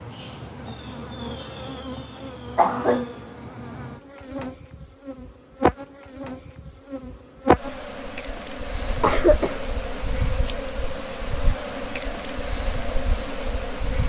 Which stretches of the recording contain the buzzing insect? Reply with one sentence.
You can hear the buzzing insect from 0.0 to 14.0 s.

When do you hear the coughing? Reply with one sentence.
You can hear the coughing from 2.5 to 3.1 s and from 8.9 to 9.6 s.